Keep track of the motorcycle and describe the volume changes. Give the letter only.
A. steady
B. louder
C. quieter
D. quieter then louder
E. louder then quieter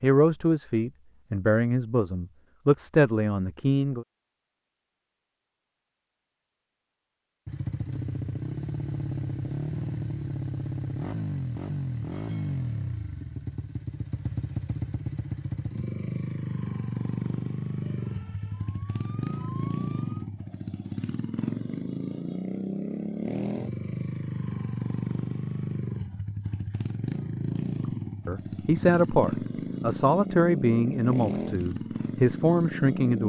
A.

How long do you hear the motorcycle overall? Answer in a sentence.
The motorcycle can be heard for 26 seconds in total.